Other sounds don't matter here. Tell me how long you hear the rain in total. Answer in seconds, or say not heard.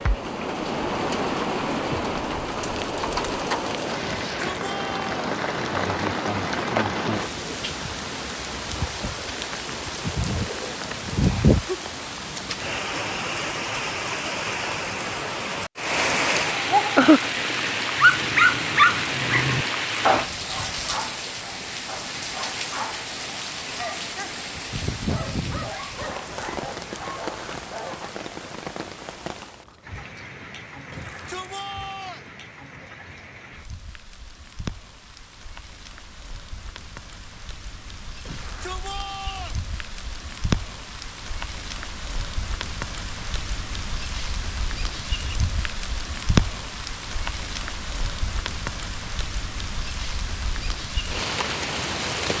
52 s.